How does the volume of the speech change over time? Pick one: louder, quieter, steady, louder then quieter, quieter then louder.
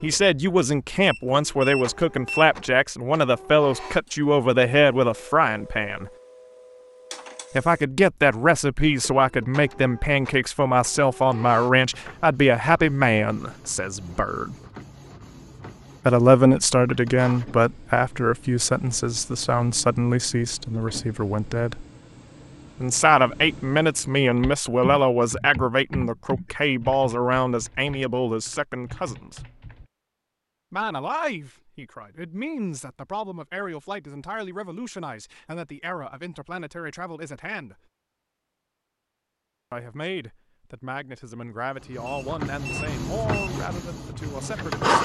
quieter.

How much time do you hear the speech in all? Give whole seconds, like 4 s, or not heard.
38 s.